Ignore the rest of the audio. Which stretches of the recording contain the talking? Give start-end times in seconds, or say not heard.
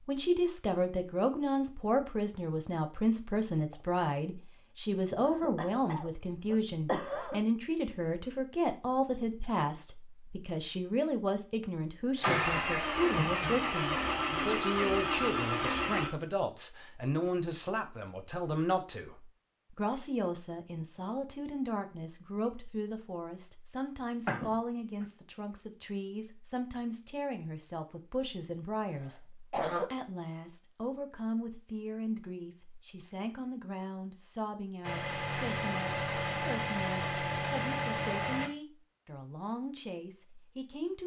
0.1-41.0.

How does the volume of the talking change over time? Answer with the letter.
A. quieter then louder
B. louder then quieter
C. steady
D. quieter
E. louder
D.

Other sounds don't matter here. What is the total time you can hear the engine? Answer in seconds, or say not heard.
8 s.